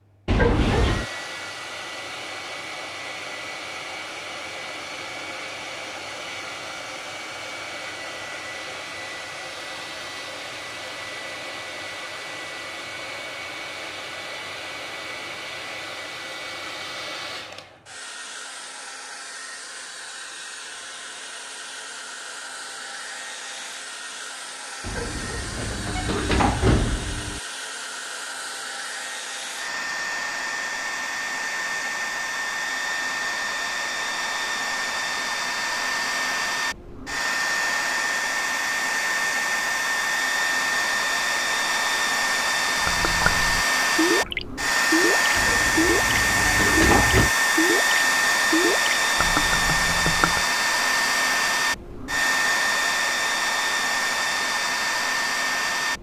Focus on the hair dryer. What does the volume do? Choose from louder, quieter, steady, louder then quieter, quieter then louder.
louder.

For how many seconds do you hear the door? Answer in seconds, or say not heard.
5 s.